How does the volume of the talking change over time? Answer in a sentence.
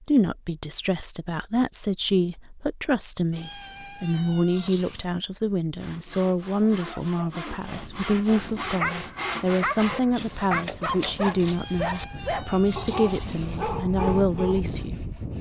The volume of the talking stays about the same.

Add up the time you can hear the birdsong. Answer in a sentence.
The birdsong can't be heard in this clip.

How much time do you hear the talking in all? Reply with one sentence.
You can hear the talking for 15 seconds altogether.